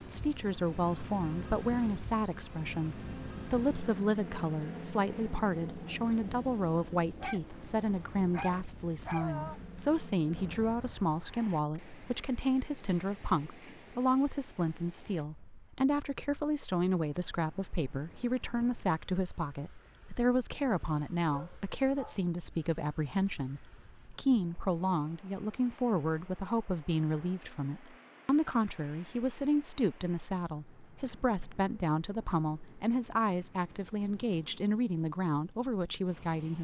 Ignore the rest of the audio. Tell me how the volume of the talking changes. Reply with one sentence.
The volume of the talking stays about the same.